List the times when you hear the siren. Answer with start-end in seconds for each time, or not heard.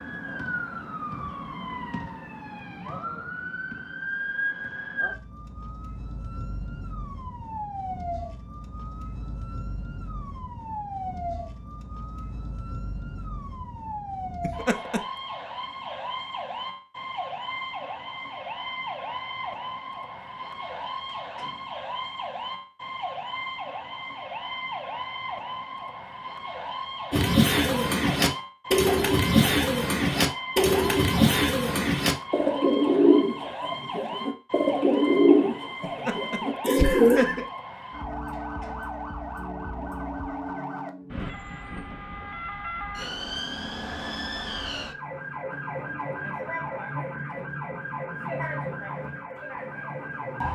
0.0-50.4.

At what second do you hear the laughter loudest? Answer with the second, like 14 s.
37 s.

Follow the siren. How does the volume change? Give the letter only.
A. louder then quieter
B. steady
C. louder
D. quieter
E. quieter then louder
B.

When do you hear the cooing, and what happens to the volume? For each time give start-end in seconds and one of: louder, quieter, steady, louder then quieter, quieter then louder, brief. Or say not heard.
27.1-37.2 steady.